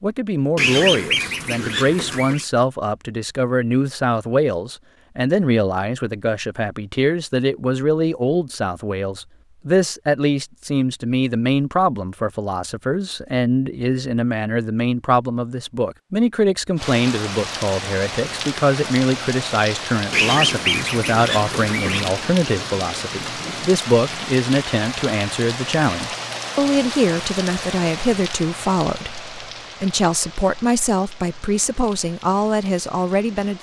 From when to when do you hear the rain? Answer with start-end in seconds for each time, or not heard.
16.8-33.5.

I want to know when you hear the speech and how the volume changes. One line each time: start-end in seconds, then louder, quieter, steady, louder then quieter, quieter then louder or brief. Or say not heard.
0.0-33.5 steady.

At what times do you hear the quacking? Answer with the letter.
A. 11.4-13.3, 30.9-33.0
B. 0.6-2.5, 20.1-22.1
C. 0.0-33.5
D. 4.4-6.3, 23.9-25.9
B.